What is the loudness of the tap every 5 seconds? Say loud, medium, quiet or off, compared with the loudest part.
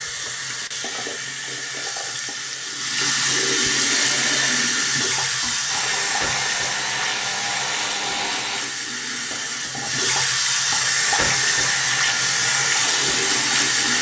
loud, medium, loud.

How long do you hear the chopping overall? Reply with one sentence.
The chopping can't be heard in this clip.